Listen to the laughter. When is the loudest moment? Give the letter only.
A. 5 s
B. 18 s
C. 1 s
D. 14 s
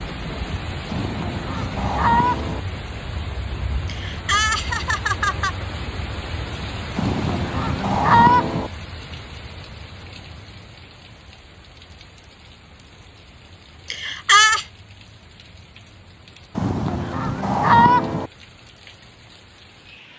D.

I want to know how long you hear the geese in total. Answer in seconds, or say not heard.
5 s.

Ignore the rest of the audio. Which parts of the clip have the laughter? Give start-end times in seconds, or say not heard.
3.9-5.5, 13.9-14.7.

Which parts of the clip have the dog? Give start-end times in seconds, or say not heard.
not heard.